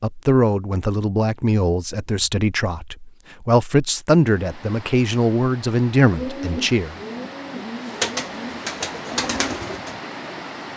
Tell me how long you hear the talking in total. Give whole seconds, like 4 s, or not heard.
7 s.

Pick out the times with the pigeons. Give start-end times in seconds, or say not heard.
6.1-10.6.